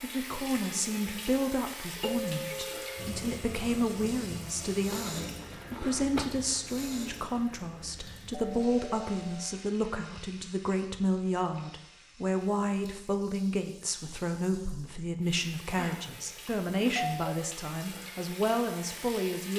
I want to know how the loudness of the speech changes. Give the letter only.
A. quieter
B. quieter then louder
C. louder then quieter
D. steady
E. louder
D.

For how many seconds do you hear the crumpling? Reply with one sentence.
You can hear the crumpling for 2 seconds altogether.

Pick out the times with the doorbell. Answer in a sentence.
The doorbell can be heard from 2.0 to 3.1 s, from 8.3 to 9.6 s and from 15.8 to 17.4 s.